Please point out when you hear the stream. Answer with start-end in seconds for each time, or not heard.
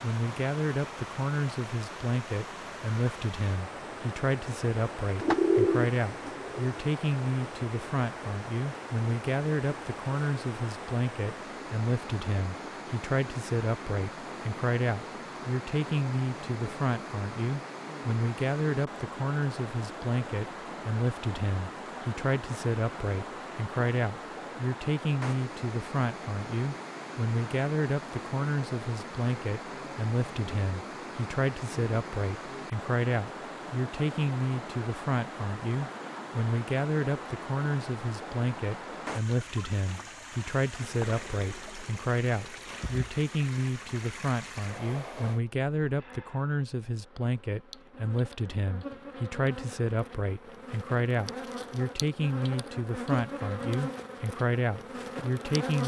0.0-45.4.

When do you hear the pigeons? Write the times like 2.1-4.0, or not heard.
5.2-6.8.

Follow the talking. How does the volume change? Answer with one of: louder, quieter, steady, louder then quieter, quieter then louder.
steady.